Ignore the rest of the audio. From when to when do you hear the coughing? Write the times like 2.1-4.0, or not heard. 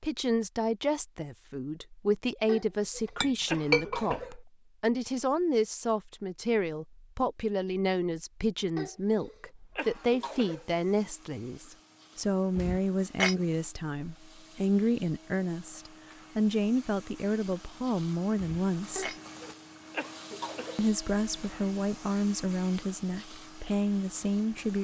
2.5-4.4, 8.8-10.7, 18.9-20.9.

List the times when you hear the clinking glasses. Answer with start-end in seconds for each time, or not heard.
3.0-4.2, 12.6-13.3, 18.4-19.2.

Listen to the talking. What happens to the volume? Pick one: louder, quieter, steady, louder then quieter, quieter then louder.
steady.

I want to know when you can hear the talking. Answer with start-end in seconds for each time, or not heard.
0.0-19.1, 20.8-24.7.